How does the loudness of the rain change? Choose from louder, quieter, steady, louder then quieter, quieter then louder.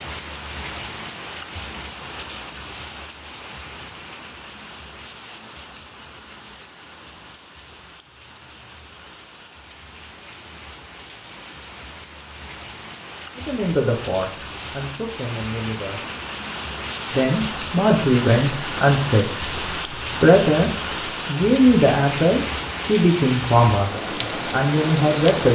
quieter then louder.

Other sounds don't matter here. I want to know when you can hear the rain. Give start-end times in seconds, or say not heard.
0.0-25.5.